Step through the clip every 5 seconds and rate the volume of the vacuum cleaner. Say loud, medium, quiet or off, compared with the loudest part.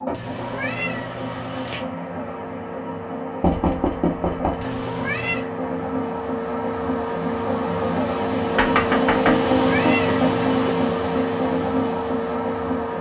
medium, loud, loud.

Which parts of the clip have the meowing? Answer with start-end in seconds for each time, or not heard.
0.1-1.9, 4.6-5.5, 9.2-10.8.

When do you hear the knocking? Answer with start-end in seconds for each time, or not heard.
3.4-4.8, 8.6-9.5.